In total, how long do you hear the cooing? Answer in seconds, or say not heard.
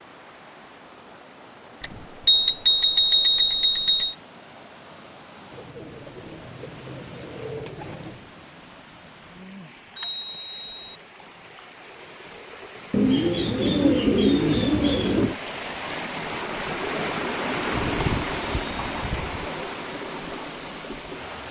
5 s.